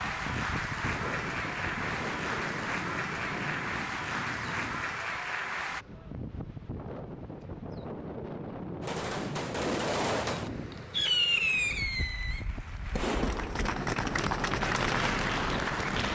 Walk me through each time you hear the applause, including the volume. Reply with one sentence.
You can hear the applause from 0.0 to 5.8 s, at a steady volume; and from 10.4 to 16.0 s, getting louder.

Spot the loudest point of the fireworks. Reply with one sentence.
The volume of the fireworks peaks at 11 seconds.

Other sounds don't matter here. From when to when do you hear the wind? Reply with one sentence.
The wind can be heard from 0.0 to 16.0 s.